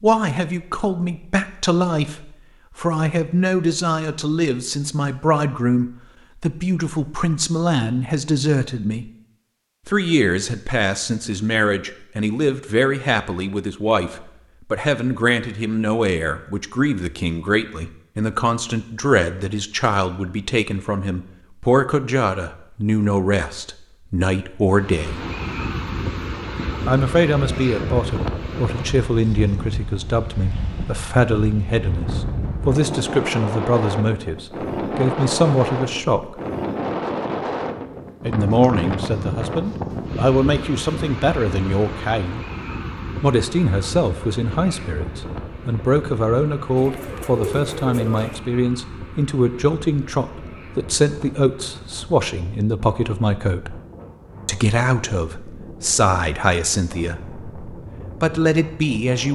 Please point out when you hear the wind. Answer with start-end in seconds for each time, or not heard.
24.7-59.3.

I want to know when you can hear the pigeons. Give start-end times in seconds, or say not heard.
46.8-48.4.